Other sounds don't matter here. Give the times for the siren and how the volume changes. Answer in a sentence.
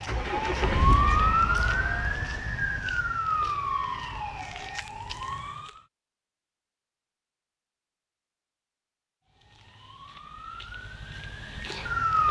You can hear the siren from 0.0 to 5.8 s, getting quieter; and briefly from 9.3 to 12.2 s.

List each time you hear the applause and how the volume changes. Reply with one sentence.
You can't hear the applause here.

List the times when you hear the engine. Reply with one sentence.
The engine can be heard from 0.0 to 3.1 s.